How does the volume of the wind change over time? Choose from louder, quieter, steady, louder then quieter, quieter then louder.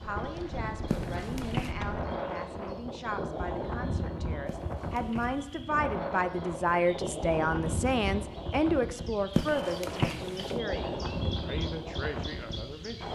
steady.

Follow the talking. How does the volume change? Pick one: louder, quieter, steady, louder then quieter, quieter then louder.
louder then quieter.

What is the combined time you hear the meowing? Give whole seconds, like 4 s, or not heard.
3 s.